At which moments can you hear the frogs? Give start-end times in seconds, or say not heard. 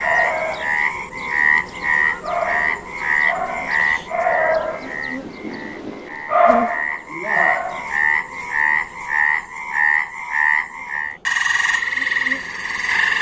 0.0-13.1.